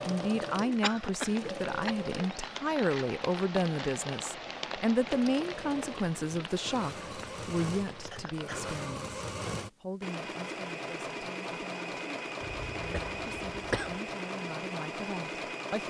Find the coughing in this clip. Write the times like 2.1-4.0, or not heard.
0.8-1.9, 8.0-8.7, 12.4-14.0.